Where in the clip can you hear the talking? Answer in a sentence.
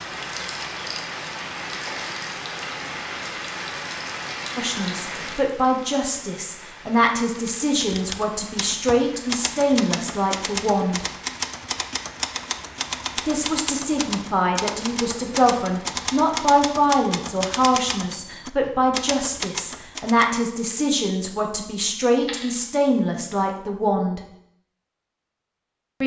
The talking can be heard from 4.5 to 11.1 s and from 13.2 to 24.2 s.